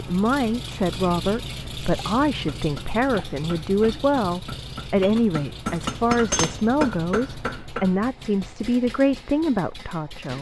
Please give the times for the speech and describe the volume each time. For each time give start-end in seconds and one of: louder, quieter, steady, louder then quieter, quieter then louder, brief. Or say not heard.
0.0-10.3 steady.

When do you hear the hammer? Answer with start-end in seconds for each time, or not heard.
2.5-8.0.